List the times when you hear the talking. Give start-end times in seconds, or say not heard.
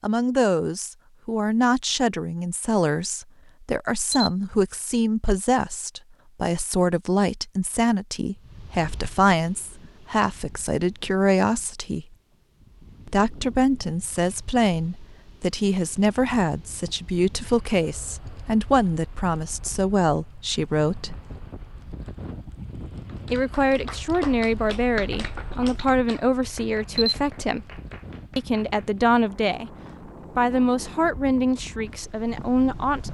0.0-12.1, 13.1-21.1, 23.3-27.7, 28.4-29.7, 30.4-33.0.